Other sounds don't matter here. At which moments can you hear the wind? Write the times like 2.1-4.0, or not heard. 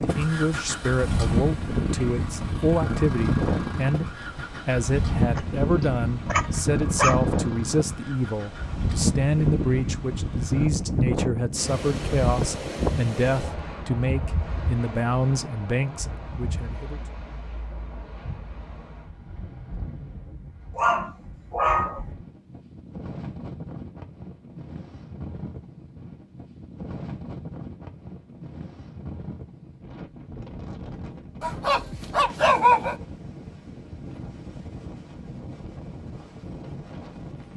0.0-37.5.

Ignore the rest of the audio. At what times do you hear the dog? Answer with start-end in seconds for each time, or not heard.
5.3-7.2, 20.8-22.0, 31.4-33.0.